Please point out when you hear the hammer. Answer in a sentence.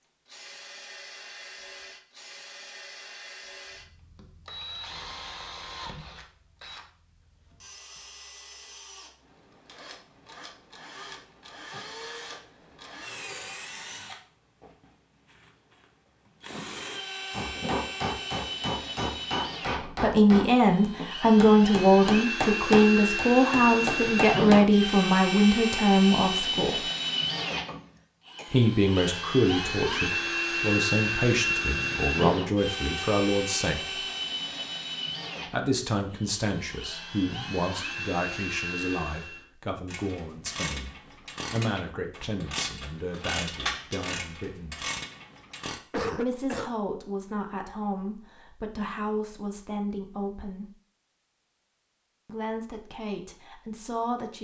You can hear the hammer from 17.3 to 24.8 s.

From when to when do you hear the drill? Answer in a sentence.
The drill can be heard from 0.2 to 39.5 s.